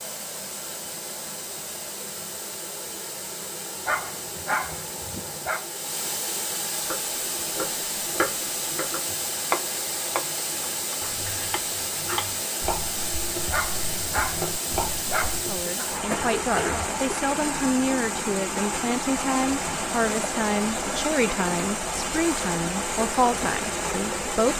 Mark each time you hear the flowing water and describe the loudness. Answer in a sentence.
You can hear the flowing water from 0.0 to 24.5 s, getting louder.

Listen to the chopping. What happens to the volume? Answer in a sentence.
The loudness of the chopping goes down, then up.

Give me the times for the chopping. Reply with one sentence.
The chopping can be heard from 6.8 to 15.7 s.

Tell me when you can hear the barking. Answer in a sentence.
The barking can be heard from 3.9 to 5.7 s and from 13.5 to 15.9 s.